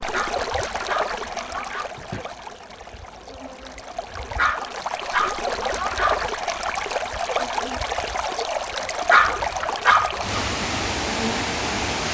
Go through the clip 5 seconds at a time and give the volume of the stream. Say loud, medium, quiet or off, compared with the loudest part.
medium, loud, loud.